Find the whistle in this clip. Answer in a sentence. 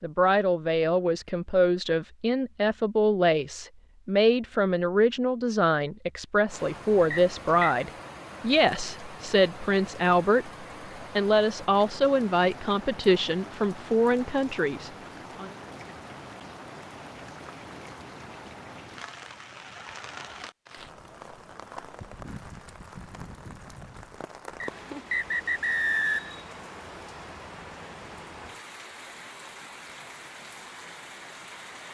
You can hear the whistle from 7.1 to 7.8 s and from 24.6 to 26.4 s.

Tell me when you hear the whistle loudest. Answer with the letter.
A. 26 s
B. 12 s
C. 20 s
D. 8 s
A.